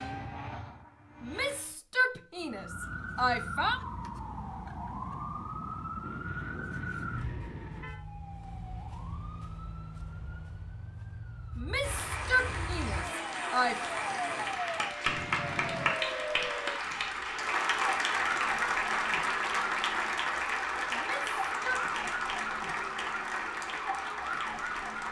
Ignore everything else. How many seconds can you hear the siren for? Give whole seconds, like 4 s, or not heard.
23 s.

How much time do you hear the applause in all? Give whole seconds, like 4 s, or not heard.
13 s.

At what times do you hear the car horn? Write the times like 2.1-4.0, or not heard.
6.0-8.0, 15.1-15.9.